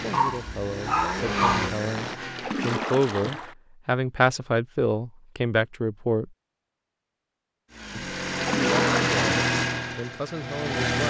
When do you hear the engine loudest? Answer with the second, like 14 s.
9 s.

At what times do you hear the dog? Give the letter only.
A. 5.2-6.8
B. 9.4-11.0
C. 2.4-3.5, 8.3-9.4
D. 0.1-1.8
D.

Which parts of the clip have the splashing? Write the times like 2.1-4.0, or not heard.
2.4-3.5, 8.3-9.4.